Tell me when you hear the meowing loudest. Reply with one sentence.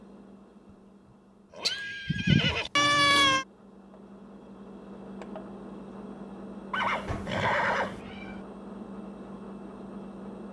The volume of the meowing peaks at 3 seconds.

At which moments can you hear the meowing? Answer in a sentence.
You can hear the meowing from 1.6 to 3.5 s and from 7.0 to 8.4 s.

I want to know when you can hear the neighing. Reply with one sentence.
You can hear the neighing from 1.5 to 2.7 s and from 6.7 to 8.0 s.